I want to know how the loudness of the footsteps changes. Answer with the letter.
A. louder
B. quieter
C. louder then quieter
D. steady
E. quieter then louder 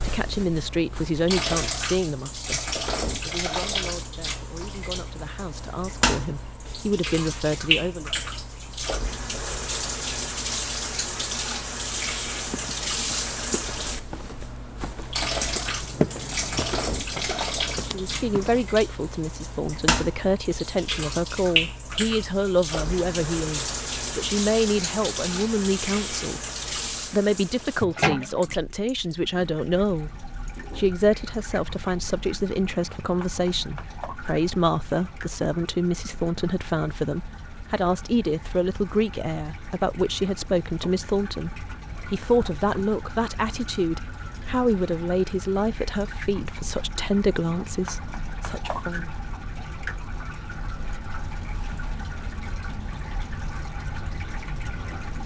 C.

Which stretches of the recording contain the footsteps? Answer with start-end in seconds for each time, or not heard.
12.4-18.6.